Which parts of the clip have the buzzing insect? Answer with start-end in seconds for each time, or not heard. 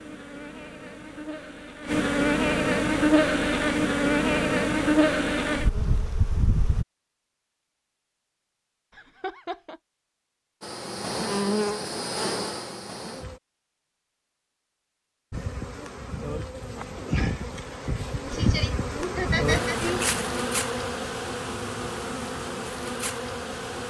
0.0-6.8, 10.6-13.4, 15.3-23.8.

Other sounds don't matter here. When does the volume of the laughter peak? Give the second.
19 s.